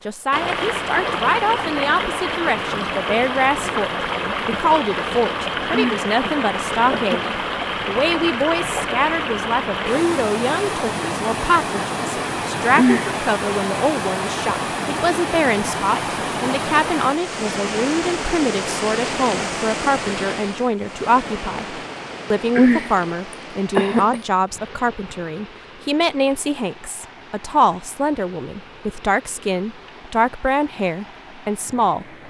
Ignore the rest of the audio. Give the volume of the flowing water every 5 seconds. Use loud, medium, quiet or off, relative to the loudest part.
loud, loud, loud, loud, medium, quiet, quiet.